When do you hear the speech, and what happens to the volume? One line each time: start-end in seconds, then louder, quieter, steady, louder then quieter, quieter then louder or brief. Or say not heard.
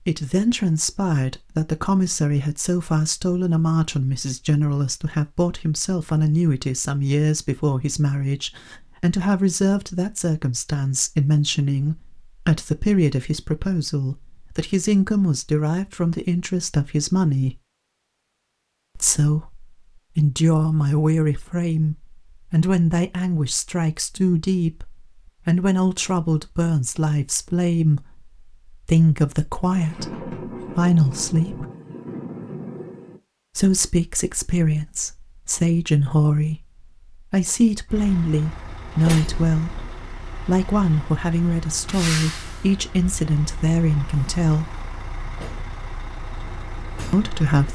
0.1-17.6 steady
18.9-31.6 steady
33.5-44.7 steady
47.1-47.7 brief.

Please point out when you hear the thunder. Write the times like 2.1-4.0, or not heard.
29.7-33.2.